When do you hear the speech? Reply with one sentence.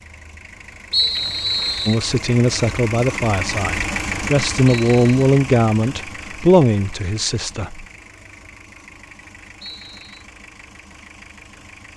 The speech can be heard from 1.9 to 7.8 s.